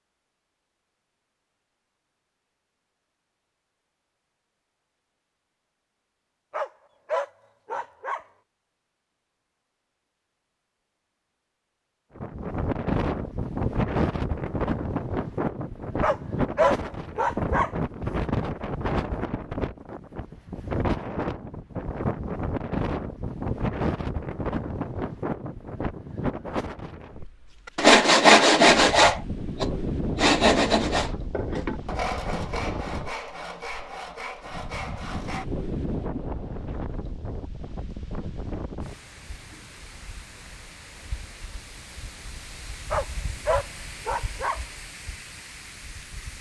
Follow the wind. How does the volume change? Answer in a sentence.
The loudness of the wind goes down.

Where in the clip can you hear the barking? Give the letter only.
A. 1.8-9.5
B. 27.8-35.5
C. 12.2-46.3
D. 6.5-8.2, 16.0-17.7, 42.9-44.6
D.